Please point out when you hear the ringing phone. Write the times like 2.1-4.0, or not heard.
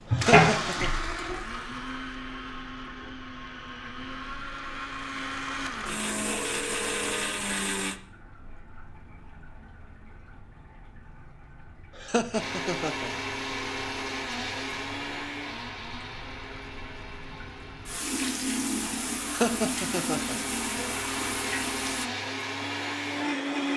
6.2-7.2.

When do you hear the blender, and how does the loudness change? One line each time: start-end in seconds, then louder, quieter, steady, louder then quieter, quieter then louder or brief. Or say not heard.
0.0-8.0 quieter then louder
12.3-23.7 quieter then louder.